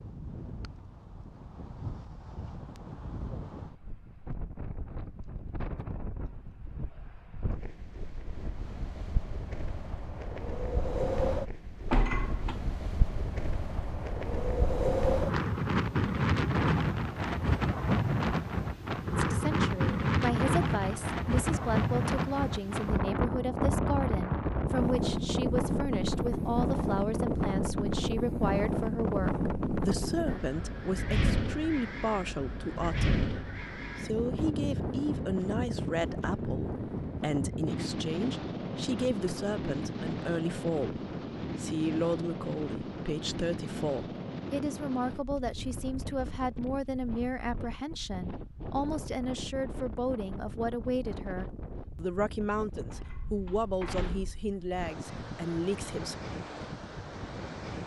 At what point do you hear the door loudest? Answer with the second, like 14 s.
12 s.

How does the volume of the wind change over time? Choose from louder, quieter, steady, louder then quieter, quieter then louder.
louder then quieter.